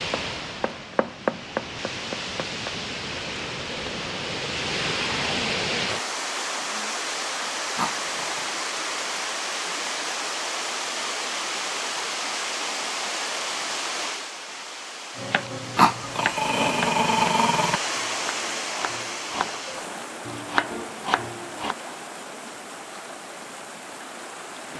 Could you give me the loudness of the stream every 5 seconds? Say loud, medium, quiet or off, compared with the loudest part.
loud, loud, loud, loud, medium.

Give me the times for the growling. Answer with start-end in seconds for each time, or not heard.
7.8-8.6, 15.8-17.8.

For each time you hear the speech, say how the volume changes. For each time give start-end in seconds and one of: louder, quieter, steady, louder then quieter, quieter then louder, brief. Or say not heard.
not heard.